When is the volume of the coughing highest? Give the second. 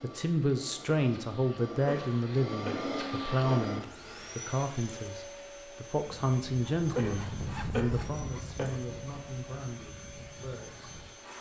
7 s.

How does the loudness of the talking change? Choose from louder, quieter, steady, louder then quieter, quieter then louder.
quieter.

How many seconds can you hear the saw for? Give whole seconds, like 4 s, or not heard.
5 s.